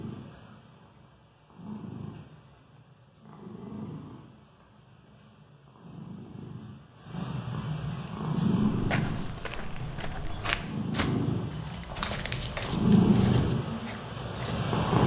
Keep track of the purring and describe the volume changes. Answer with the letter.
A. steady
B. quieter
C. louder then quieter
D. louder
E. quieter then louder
D.